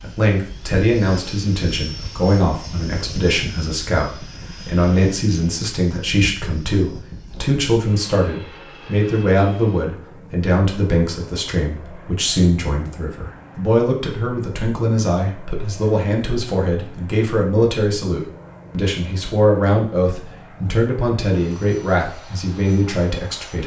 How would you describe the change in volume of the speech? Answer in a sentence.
The volume of the speech stays about the same.